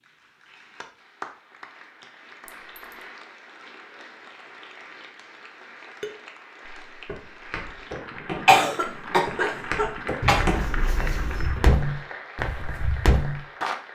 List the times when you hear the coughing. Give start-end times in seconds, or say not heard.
8.4-10.4.